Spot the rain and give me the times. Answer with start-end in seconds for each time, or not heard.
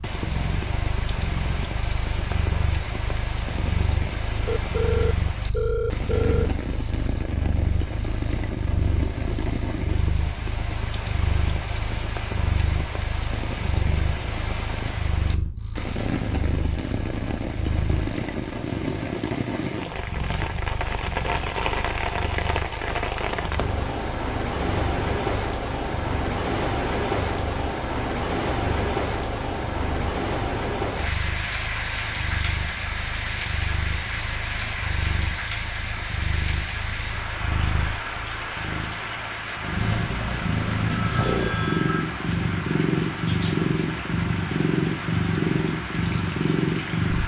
0.0-47.2.